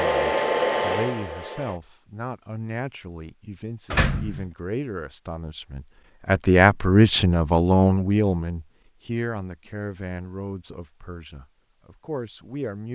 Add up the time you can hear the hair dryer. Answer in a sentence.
You can hear the hair dryer for 2 seconds altogether.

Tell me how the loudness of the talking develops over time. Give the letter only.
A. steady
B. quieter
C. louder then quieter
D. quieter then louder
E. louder
C.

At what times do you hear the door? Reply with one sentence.
You can hear the door from 3.9 to 4.5 s.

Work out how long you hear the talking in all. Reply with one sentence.
You can hear the talking for 13 seconds altogether.